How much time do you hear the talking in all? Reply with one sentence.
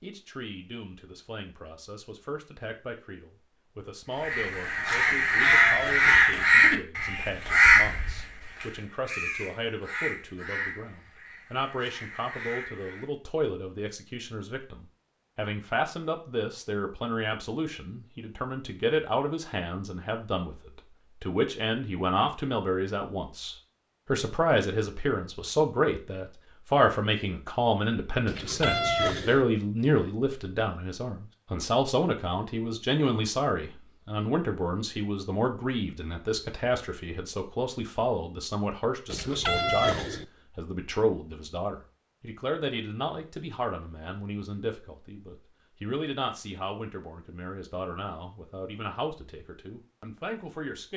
The talking can be heard for 51 seconds in total.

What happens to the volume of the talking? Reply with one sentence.
The loudness of the talking goes up, then down.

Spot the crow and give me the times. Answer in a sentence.
You can hear the crow from 4.2 to 13.1 s.